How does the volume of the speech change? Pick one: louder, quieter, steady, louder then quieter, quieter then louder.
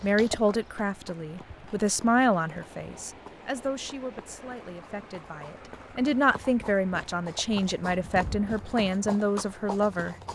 quieter then louder.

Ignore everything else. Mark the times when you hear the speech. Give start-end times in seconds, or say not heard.
0.0-10.2.